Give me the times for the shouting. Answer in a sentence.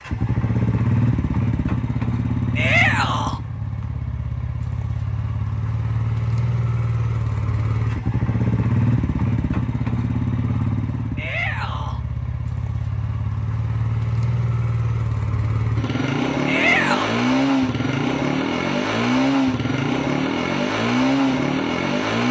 You can hear the shouting from 2.5 to 3.4 s, from 11.2 to 12.0 s and from 16.4 to 17.1 s.